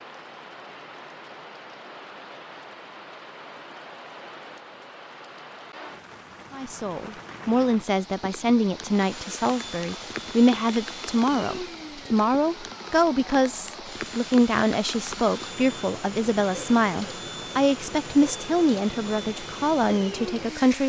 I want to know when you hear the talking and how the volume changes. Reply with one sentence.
The talking can be heard from 6.5 to 20.8 s, at a steady volume.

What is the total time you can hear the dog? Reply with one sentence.
You can't hear the dog here.